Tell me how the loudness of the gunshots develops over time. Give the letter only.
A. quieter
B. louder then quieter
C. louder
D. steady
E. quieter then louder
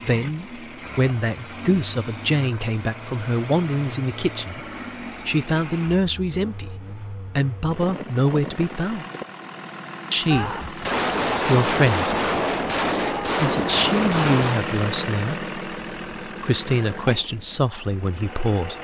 D.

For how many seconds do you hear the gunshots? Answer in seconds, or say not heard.
4 s.